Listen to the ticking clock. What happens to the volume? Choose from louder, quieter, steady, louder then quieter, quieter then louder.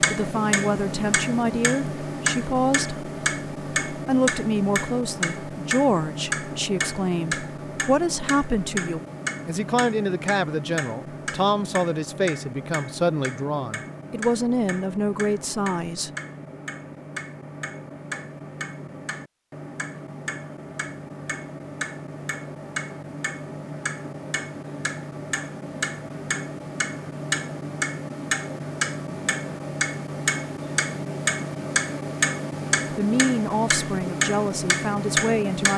quieter then louder.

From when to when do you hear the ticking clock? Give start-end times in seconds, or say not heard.
0.0-35.7.